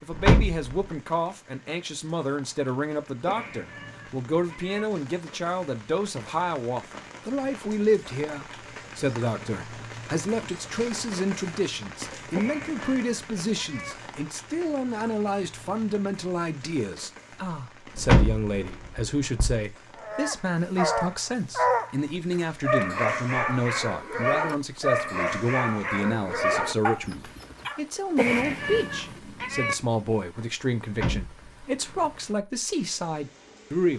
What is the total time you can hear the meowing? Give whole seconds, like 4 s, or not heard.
5 s.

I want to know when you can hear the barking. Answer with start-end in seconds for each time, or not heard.
19.9-27.8.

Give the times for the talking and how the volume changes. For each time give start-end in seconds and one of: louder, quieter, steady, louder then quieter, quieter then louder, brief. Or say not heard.
0.0-33.9 steady.